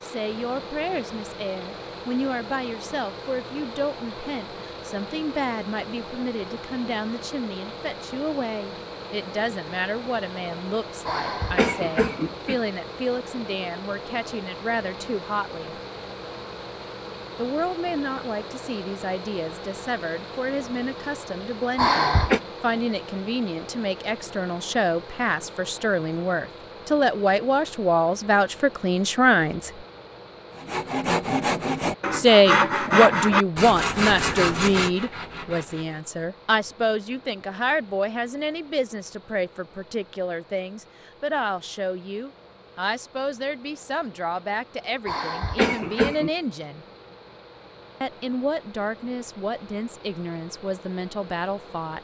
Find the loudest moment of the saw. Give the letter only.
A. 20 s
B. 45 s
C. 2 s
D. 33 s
D.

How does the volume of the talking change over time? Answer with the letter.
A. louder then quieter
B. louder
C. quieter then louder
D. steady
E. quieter
A.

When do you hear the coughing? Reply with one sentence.
You can hear the coughing from 11.1 to 12.6 s, from 21.8 to 22.4 s and from 45.0 to 46.3 s.